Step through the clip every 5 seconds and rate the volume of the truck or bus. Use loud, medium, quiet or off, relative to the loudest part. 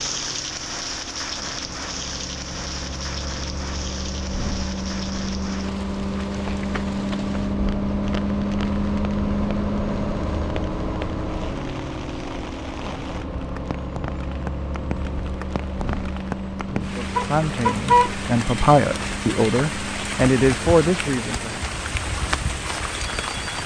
medium, loud, medium, medium, quiet.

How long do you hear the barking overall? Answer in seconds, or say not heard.
not heard.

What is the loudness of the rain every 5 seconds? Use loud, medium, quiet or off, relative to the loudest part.
loud, medium, medium, loud, loud.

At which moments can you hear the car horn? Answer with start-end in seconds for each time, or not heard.
17.1-18.1.